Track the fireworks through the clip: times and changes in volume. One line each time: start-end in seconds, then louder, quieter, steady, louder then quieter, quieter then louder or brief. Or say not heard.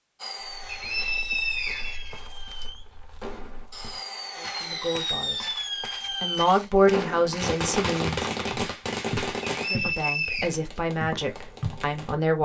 0.1-12.2 louder then quieter.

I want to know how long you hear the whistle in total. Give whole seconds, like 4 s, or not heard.
3 s.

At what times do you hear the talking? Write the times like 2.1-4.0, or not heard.
4.3-5.5, 6.2-8.2, 9.7-12.3.